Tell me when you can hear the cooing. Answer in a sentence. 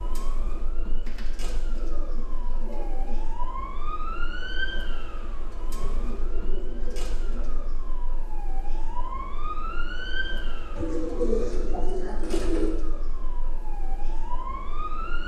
The cooing can be heard from 1.1 to 3.3 s, from 5.8 to 7.7 s and from 10.8 to 12.8 s.